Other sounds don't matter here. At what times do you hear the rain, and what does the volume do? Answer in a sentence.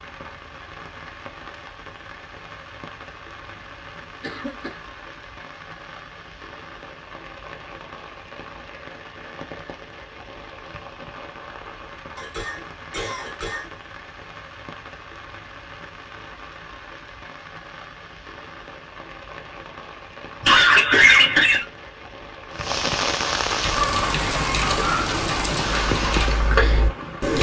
You can hear the rain from 0.0 to 27.3 s, getting louder.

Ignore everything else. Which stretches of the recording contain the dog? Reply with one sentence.
The dog can't be heard in this clip.